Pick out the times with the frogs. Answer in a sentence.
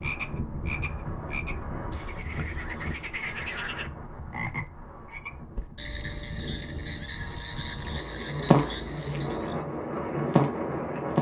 You can hear the frogs from 0.0 to 9.7 s.